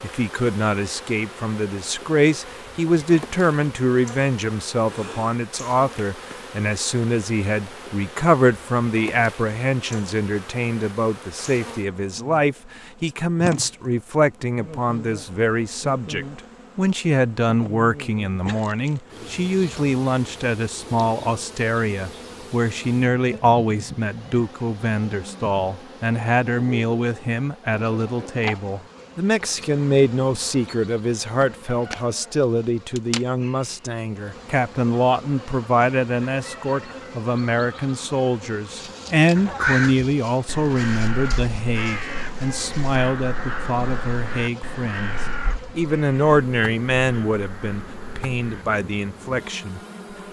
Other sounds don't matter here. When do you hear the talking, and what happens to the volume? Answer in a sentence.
You can hear the talking from 0.0 to 49.8 s, at a steady volume.